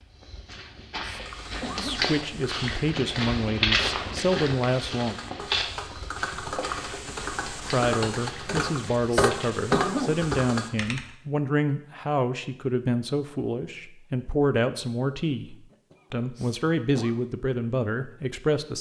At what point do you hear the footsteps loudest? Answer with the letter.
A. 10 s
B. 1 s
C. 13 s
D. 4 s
D.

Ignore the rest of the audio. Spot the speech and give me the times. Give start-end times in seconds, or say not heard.
1.8-5.2, 7.7-18.7.